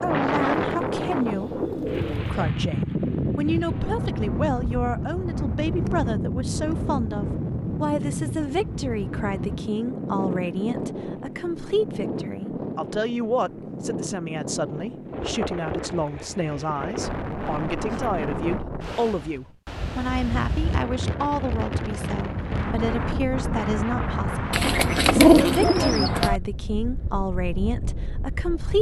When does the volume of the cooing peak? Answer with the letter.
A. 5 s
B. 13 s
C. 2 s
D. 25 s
D.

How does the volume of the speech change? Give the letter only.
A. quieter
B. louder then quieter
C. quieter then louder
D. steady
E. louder
D.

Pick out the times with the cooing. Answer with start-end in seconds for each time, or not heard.
0.4-2.5, 24.5-26.4.